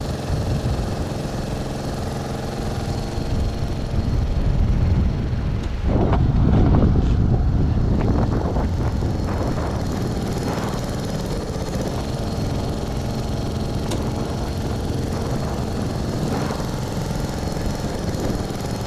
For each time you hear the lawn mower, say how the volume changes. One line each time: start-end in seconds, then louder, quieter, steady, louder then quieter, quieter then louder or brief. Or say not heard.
0.0-18.8 quieter then louder.